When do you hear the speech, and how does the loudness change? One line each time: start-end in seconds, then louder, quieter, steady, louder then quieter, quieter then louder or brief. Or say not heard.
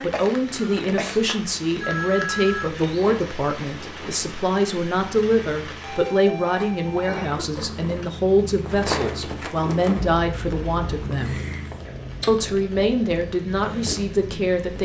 0.0-11.4 steady
12.2-14.8 brief.